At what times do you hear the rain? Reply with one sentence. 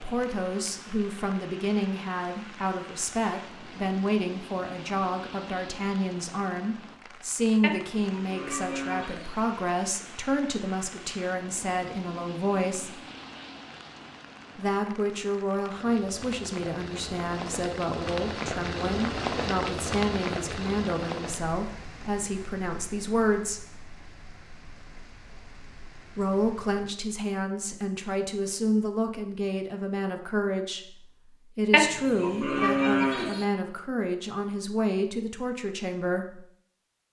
The rain can be heard from 0.0 to 26.9 s.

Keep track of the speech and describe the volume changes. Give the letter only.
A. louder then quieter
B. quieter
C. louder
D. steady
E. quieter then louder
D.